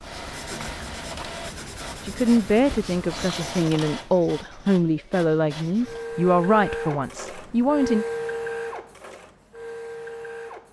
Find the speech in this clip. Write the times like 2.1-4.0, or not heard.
2.0-8.1.